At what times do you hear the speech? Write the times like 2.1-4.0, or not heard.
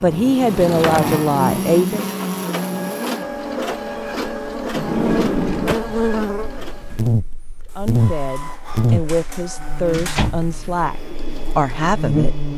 0.0-2.0, 7.8-12.3.